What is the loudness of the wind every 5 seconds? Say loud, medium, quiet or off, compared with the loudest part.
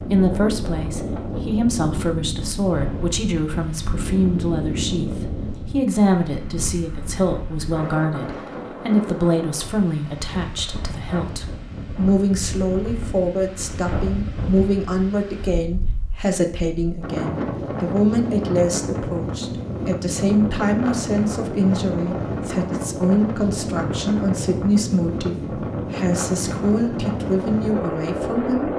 loud, medium, medium, loud, loud, loud.